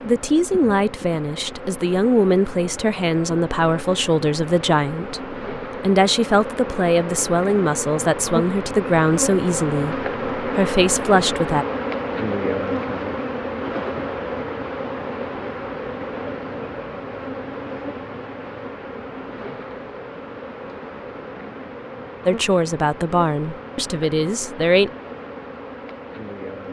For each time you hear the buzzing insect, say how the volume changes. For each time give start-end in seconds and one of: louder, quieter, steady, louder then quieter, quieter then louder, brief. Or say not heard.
0.0-26.6 louder then quieter.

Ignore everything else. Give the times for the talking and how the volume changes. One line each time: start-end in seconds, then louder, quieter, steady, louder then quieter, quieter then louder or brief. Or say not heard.
0.0-11.7 steady
22.2-24.9 brief.